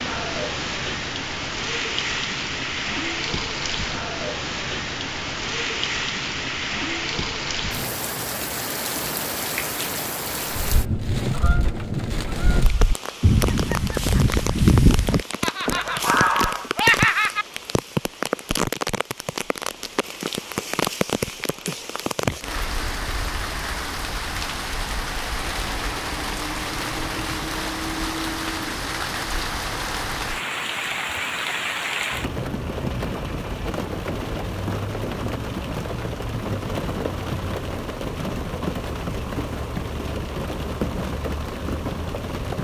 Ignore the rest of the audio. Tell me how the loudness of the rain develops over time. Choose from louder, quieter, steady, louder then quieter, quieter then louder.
steady.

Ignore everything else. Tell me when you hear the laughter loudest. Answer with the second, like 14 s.
17 s.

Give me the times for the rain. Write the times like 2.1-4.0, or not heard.
0.0-42.5.